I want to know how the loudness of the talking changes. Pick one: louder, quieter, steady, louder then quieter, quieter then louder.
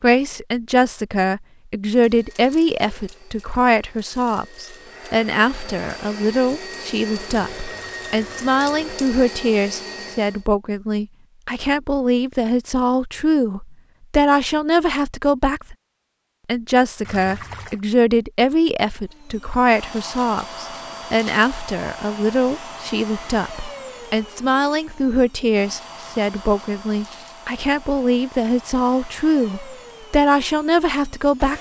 steady.